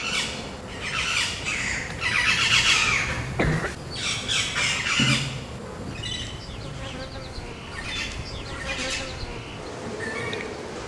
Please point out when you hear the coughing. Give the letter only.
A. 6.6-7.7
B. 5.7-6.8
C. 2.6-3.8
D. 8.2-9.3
C.